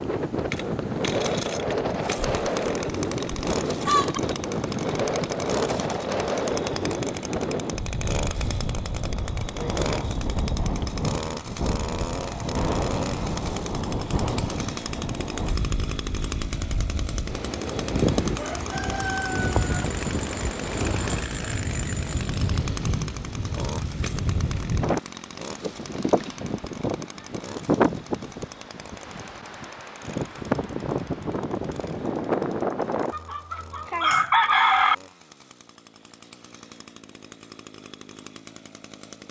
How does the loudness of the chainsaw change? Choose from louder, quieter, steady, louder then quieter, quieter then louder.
quieter.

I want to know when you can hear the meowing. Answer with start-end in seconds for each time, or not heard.
not heard.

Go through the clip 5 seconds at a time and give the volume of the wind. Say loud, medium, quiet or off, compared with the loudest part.
loud, loud, loud, loud, loud, loud, loud, off.